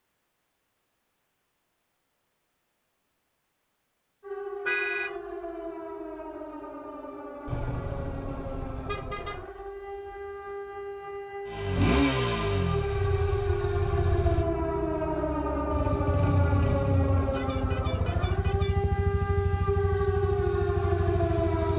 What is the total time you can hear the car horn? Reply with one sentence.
The car horn can be heard for 4 seconds in total.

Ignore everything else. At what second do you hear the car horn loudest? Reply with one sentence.
The volume of the car horn peaks at 5 seconds.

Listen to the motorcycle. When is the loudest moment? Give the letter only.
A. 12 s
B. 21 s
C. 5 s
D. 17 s
A.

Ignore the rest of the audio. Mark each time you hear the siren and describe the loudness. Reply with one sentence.
The siren can be heard from 4.2 to 21.7 s, getting louder.